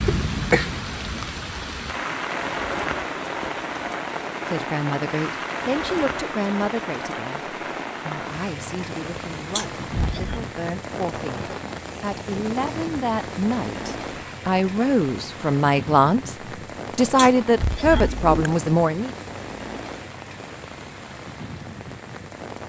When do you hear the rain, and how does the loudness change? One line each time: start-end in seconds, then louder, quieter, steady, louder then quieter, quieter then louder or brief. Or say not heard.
0.0-22.6 quieter.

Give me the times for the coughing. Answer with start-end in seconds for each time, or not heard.
0.1-0.7, 9.6-10.4, 17.1-18.5.